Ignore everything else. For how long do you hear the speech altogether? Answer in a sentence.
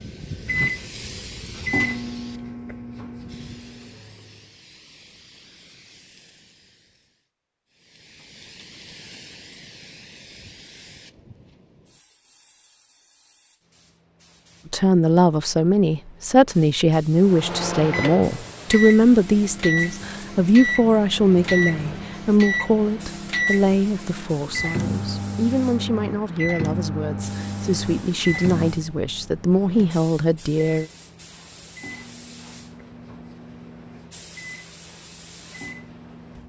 You can hear the speech for 16 seconds altogether.